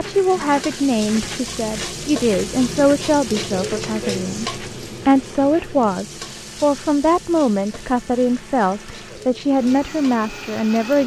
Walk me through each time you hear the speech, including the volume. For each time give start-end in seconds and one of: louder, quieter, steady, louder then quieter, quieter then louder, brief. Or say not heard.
0.0-11.0 steady.